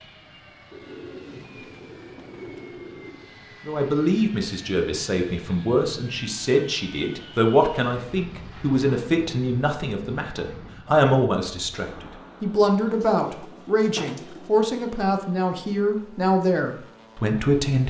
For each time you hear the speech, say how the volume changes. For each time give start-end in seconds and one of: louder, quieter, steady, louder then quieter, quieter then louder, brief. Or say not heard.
3.6-17.8 steady.